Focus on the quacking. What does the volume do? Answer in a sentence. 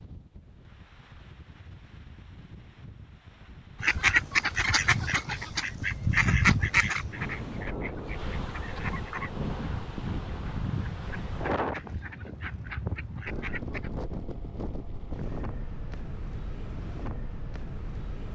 The loudness of the quacking goes down.